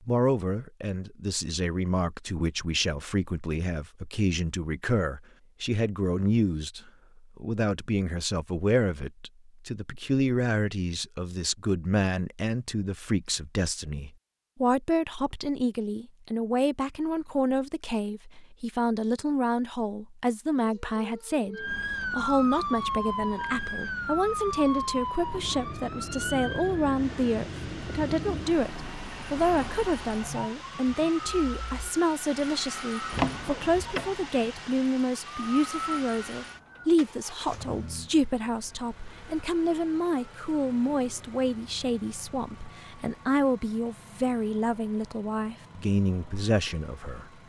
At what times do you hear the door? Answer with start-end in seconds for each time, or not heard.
33.1-34.1.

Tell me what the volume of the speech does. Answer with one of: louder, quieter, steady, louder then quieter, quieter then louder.
steady.